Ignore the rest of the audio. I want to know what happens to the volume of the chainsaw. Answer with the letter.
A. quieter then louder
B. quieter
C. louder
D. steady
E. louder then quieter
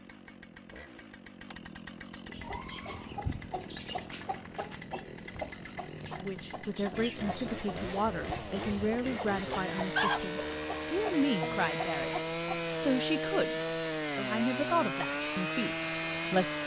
C.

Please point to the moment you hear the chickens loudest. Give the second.
10 s.